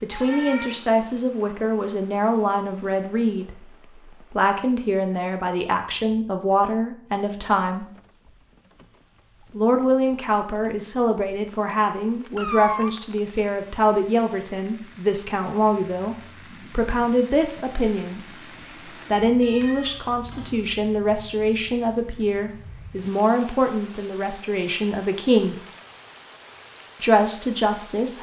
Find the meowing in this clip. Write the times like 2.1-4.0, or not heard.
0.1-0.8, 12.3-12.9, 19.4-20.8.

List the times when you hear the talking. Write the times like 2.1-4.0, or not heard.
0.0-7.8, 9.6-18.2, 19.1-25.6, 27.0-28.1.